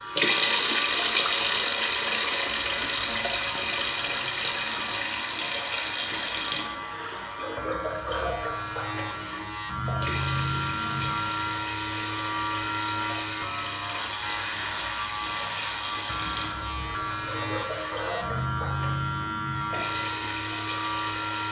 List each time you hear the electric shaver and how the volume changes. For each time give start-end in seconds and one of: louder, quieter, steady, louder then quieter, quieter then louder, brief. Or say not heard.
0.0-21.4 louder.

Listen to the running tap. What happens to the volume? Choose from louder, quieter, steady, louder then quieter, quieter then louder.
quieter.